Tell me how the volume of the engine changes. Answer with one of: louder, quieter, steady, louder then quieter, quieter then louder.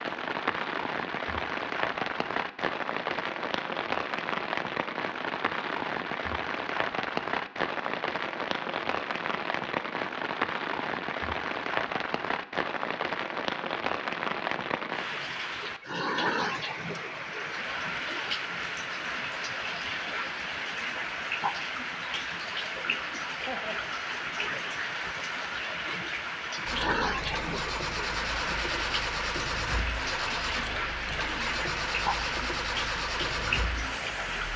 steady.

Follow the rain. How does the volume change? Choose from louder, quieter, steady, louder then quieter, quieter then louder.
steady.